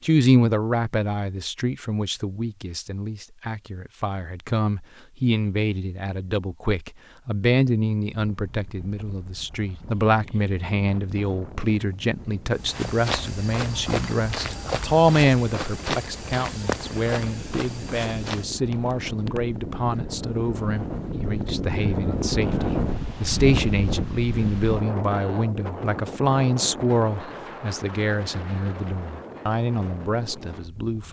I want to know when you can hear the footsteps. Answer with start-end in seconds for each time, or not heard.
12.5-19.4.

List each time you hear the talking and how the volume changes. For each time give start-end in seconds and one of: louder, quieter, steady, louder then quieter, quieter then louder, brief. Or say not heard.
0.0-31.0 steady.